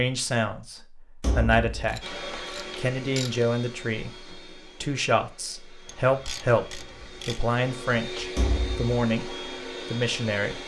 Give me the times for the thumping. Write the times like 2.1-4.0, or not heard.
1.2-2.0, 8.3-8.9.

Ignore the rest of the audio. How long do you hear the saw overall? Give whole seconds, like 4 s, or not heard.
not heard.